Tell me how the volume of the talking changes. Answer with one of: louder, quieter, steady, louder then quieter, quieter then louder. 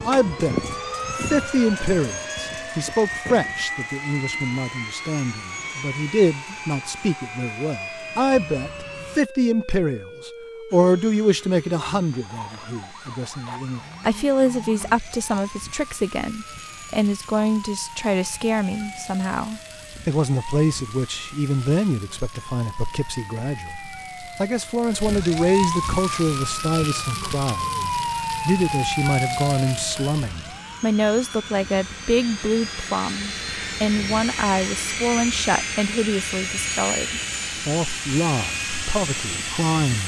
steady.